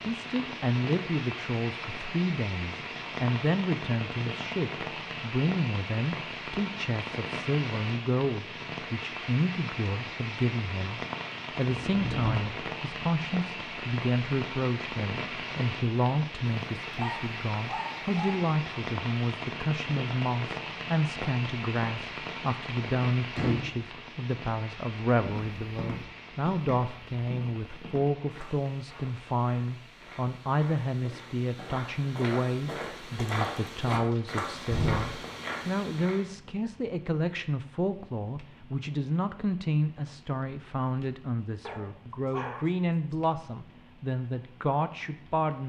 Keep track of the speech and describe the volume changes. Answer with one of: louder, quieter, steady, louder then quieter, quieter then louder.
steady.